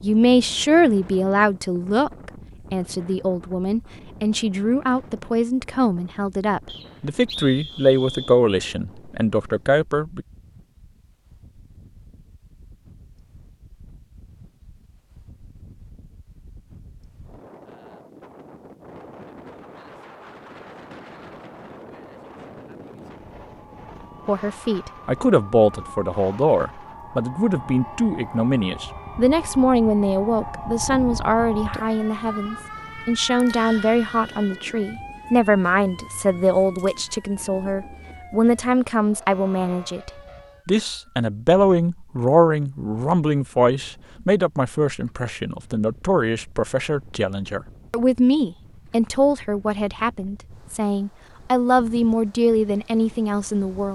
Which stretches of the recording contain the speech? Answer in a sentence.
You can hear the speech from 0.0 to 10.2 s and from 24.2 to 53.9 s.